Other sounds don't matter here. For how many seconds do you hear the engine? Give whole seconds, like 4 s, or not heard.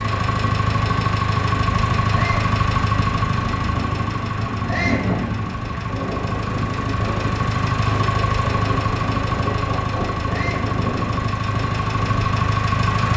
13 s.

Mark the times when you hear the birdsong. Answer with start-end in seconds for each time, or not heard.
not heard.